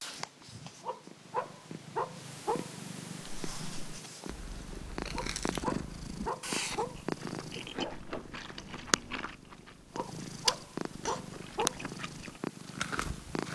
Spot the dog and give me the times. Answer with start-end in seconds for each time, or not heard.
0.8-2.7, 5.1-7.0, 9.9-11.8.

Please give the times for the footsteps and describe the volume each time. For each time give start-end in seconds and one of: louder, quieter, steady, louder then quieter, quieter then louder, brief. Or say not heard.
not heard.